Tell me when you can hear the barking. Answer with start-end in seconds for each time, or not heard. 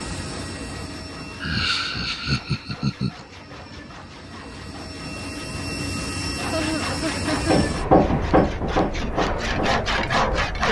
not heard.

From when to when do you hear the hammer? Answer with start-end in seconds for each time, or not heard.
7.3-10.4.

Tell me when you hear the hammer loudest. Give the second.
8 s.